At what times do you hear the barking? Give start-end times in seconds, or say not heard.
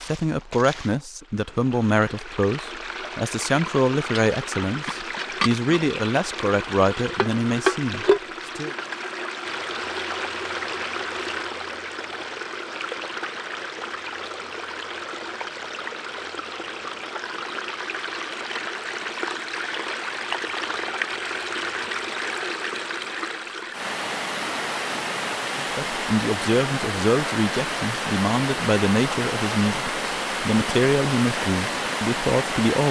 not heard.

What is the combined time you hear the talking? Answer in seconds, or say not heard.
16 s.